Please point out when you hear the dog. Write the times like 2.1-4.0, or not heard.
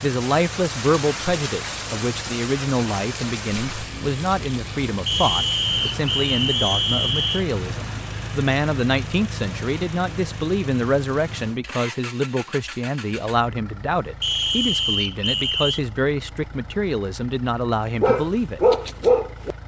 18.0-19.6.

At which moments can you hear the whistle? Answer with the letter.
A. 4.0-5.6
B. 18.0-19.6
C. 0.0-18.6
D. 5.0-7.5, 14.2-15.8
D.